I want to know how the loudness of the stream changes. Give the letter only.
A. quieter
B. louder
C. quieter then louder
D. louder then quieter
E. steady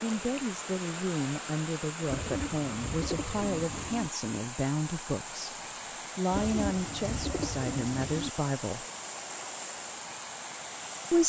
E.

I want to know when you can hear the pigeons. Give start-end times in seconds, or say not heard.
2.0-4.1, 6.3-8.3.